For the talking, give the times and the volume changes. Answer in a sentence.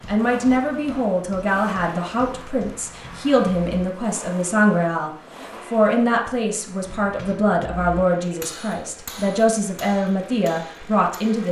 You can hear the talking from 0.1 to 11.4 s, at a steady volume.